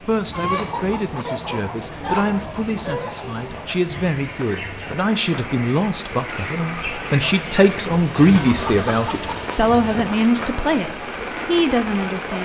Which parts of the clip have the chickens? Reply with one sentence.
You can hear the chickens from 0.2 to 9.7 s.